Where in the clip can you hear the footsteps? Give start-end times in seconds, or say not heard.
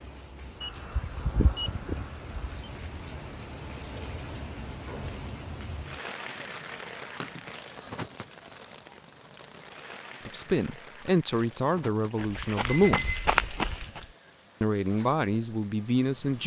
12.2-14.1.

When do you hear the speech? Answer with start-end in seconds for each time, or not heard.
10.2-13.1, 14.6-16.4.